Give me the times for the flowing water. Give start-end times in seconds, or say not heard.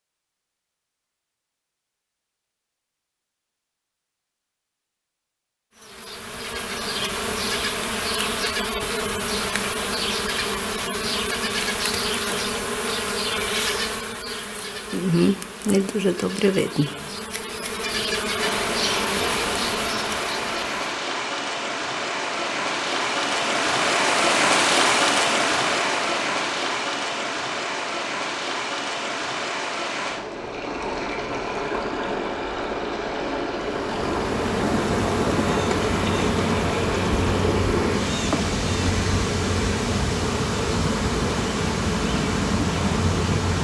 18.4-43.5.